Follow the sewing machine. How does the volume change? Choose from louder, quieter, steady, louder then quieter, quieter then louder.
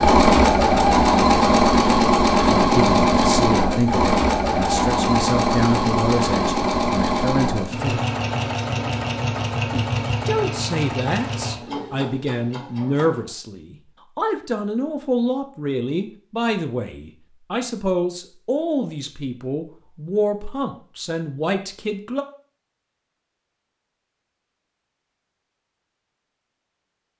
quieter.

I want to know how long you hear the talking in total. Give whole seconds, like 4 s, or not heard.
18 s.